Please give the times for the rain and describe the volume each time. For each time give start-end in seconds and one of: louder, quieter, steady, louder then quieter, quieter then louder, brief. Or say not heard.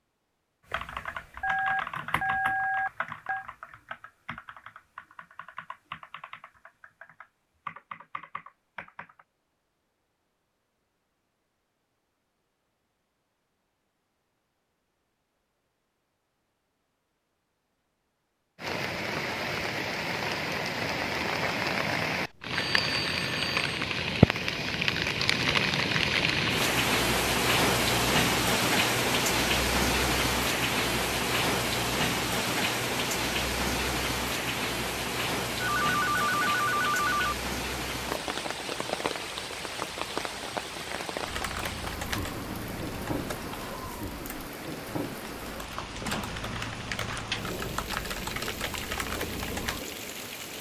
18.6-50.5 quieter.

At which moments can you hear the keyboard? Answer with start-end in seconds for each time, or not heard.
0.7-9.2, 41.2-49.9.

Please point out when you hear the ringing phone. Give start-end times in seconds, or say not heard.
1.4-3.5, 22.1-23.8, 35.6-37.4.